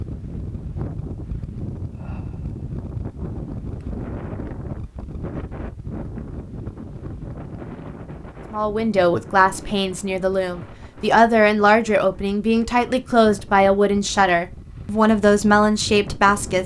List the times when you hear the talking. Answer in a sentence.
You can hear the talking from 8.5 to 16.6 s.